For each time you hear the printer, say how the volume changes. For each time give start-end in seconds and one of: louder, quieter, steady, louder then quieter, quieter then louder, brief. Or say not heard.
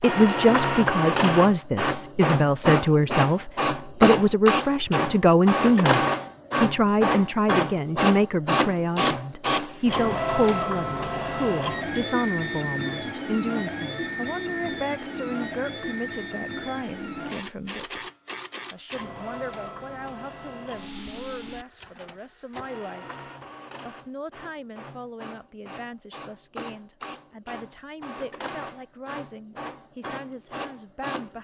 0.0-31.3 quieter.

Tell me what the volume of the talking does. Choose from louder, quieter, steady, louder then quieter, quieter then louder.
quieter.